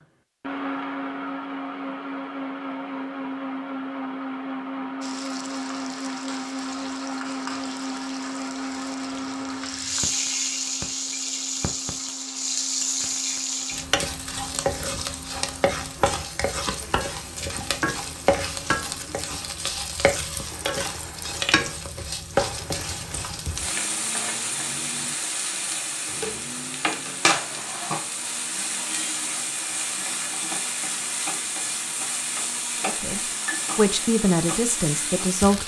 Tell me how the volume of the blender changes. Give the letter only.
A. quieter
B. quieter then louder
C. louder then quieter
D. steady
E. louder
A.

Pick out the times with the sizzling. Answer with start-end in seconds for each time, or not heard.
5.0-35.6.